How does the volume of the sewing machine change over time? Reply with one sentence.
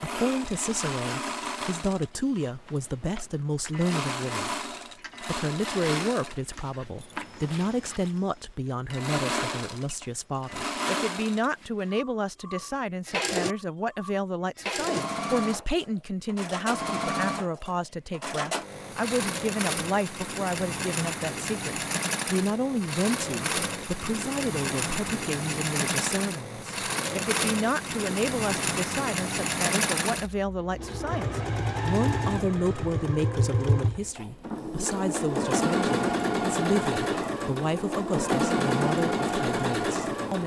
The volume of the sewing machine goes up.